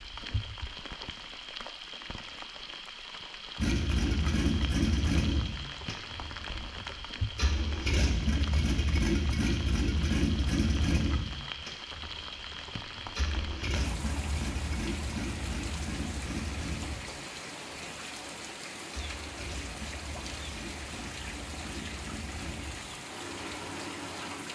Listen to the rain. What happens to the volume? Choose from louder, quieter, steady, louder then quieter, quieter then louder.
steady.